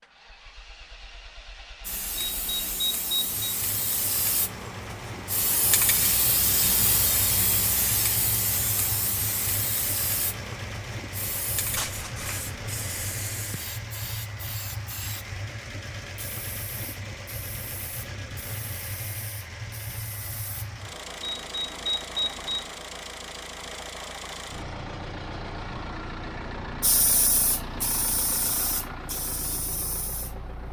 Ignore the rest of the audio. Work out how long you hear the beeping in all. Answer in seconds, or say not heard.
3 s.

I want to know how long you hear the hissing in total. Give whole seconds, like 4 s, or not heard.
23 s.